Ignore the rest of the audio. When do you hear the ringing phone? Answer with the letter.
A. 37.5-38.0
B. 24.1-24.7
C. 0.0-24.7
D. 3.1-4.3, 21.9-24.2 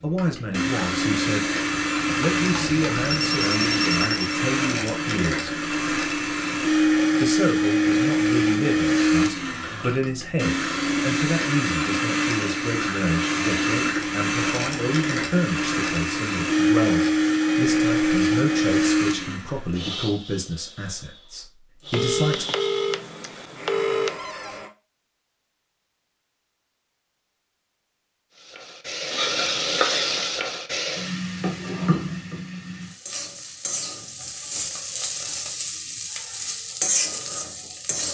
D.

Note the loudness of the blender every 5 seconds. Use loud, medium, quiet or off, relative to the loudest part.
loud, loud, loud, loud, quiet, off, off, off.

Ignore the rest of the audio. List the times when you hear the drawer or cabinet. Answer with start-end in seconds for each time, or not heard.
24.1-24.7.